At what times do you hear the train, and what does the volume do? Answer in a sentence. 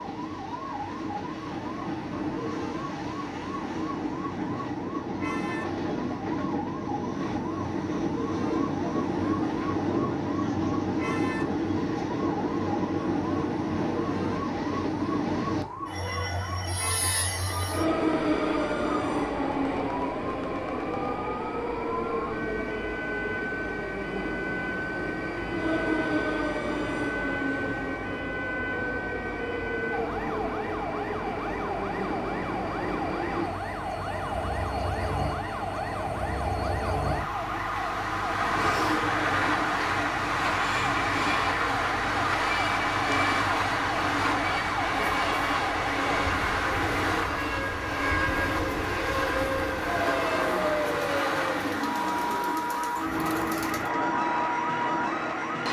You can hear the train from 0.0 to 55.6 s, at a steady volume.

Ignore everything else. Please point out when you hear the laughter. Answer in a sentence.
The laughter can't be heard in this clip.